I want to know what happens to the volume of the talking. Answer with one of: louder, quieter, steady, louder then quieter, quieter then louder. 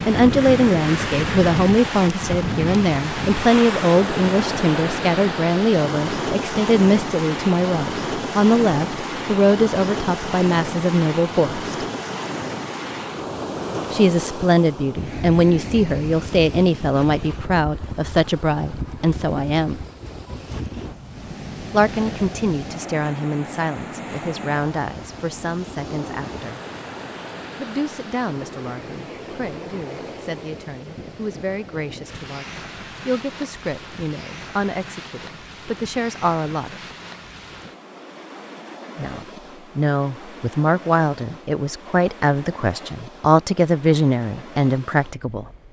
quieter then louder.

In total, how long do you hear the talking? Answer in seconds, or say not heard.
38 s.